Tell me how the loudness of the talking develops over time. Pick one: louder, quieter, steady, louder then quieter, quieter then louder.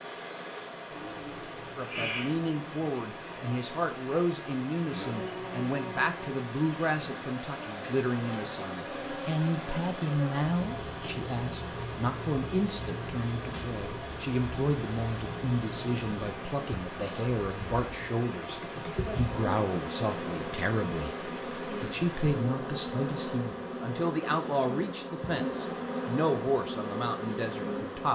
steady.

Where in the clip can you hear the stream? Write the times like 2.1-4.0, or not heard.
0.0-22.4.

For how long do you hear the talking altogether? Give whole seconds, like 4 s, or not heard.
26 s.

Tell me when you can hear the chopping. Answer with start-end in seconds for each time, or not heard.
not heard.